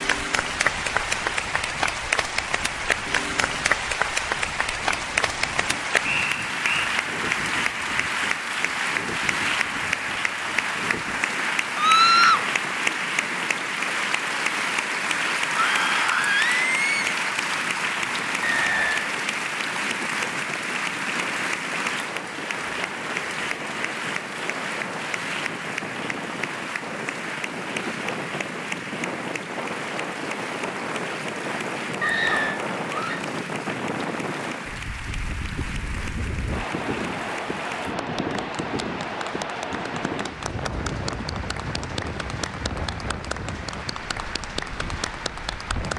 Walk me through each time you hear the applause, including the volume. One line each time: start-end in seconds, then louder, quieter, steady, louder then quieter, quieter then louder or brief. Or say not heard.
0.0-45.9 quieter.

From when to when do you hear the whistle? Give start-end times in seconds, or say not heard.
6.0-6.9, 18.4-19.1, 32.0-32.6.